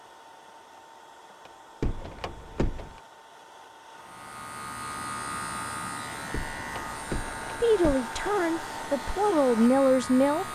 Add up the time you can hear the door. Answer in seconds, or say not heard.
3 s.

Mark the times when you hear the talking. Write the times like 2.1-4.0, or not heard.
7.6-10.5.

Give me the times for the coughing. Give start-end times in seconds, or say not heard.
not heard.